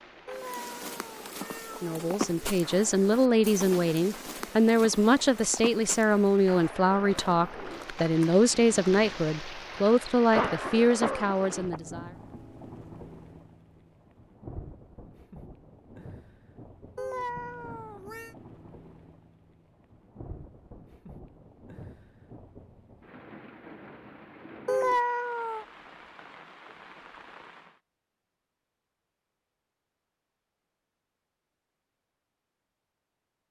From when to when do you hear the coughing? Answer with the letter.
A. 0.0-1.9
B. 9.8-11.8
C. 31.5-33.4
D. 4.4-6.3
B.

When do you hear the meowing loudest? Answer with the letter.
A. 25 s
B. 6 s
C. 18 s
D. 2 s
A.